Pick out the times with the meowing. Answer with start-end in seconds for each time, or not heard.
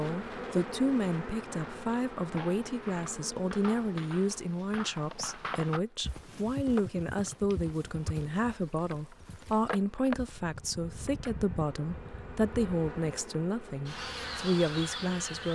not heard.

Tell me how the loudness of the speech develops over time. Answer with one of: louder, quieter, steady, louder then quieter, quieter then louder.
steady.